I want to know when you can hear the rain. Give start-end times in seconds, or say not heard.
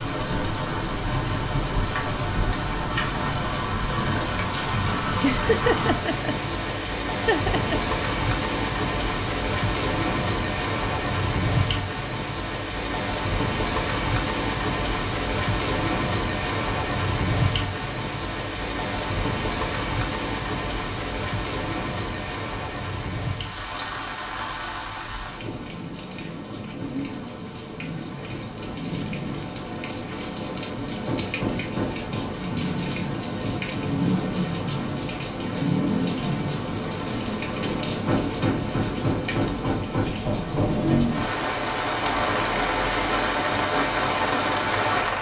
0.0-45.1.